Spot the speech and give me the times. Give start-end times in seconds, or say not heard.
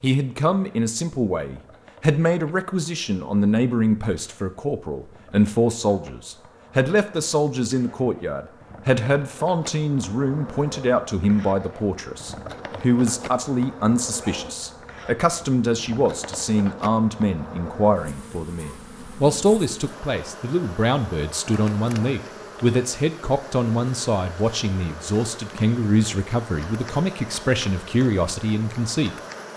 0.0-29.1.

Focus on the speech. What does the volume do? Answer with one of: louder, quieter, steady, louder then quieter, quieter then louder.
steady.